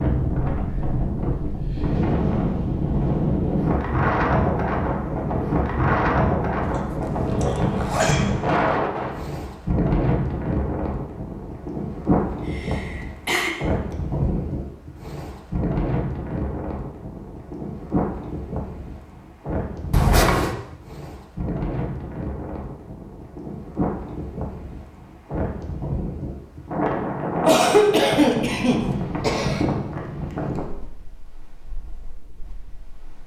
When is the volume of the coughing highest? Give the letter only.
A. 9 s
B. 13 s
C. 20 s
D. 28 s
D.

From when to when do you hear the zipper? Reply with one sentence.
The zipper can be heard from 6.6 to 8.2 s and from 19.9 to 20.6 s.